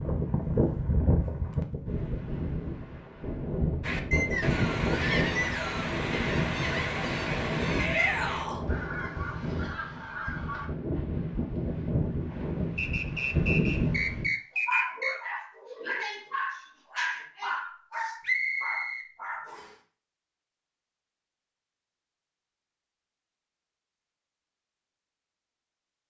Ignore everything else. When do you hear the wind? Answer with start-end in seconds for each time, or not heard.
0.0-14.3.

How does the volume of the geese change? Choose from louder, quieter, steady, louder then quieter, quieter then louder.
quieter.